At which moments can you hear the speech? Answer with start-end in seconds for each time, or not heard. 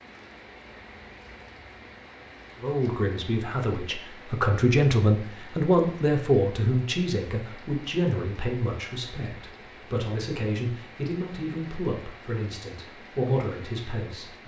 2.6-14.4.